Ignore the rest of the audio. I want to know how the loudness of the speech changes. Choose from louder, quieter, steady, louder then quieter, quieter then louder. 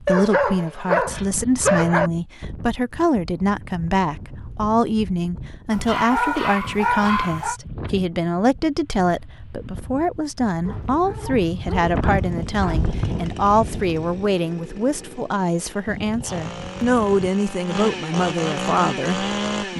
steady.